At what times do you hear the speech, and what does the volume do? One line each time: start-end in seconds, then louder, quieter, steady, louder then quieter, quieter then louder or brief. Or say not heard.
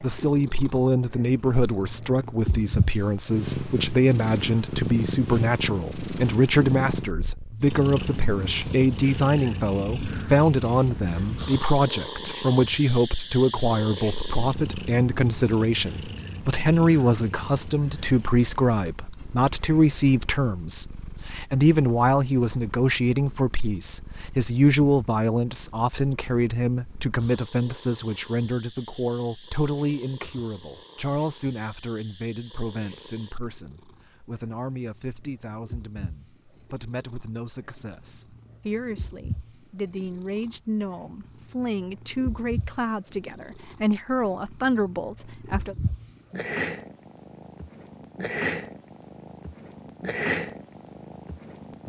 0.0-45.8 quieter.